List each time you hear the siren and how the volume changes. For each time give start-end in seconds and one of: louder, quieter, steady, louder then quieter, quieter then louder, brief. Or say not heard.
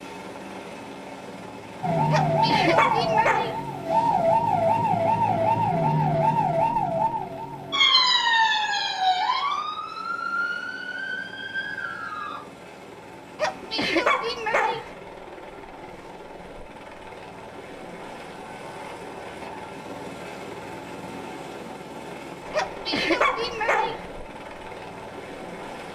1.8-12.4 quieter.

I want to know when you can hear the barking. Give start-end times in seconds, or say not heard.
2.1-3.6, 13.3-14.9, 22.5-24.1.